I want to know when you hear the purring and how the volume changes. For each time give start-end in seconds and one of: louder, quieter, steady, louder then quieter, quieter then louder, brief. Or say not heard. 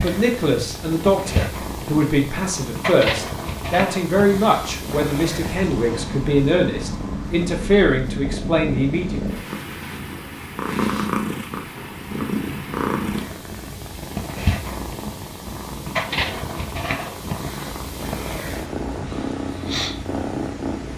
0.0-20.9 steady.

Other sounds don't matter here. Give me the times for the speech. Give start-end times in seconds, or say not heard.
0.0-9.2.